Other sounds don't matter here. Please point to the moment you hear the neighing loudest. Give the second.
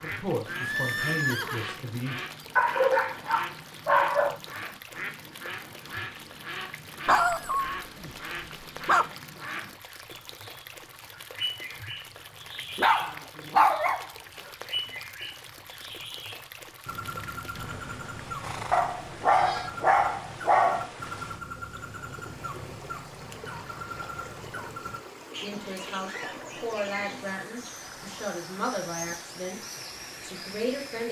1 s.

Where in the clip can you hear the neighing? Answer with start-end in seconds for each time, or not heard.
0.5-1.7, 17.6-19.7.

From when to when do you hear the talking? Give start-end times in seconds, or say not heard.
0.0-2.2, 25.4-29.6, 30.2-31.0.